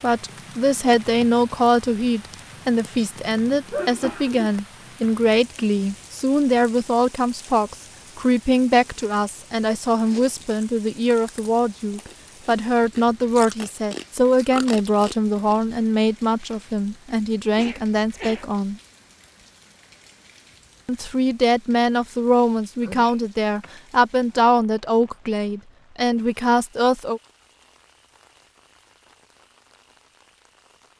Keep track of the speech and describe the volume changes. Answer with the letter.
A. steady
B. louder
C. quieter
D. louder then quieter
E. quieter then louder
A.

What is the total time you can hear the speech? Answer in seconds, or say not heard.
25 s.